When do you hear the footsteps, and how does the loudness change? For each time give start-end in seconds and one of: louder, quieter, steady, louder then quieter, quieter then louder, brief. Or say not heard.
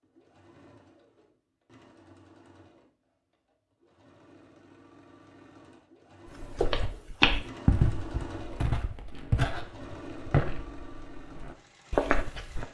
6.4-12.6 quieter then louder.